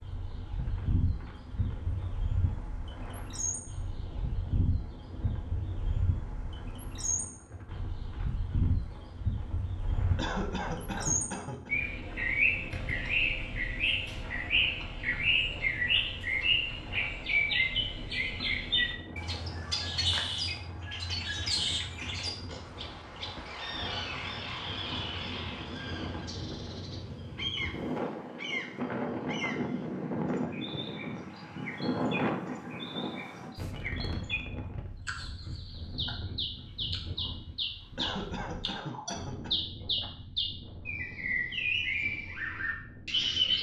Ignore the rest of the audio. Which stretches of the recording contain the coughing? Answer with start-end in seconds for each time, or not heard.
10.2-11.7, 38.0-39.5.